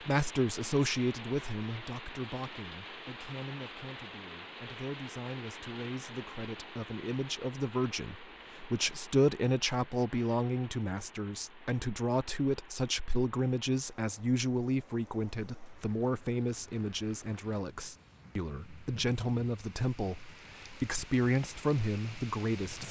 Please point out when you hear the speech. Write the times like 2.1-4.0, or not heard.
0.1-22.8.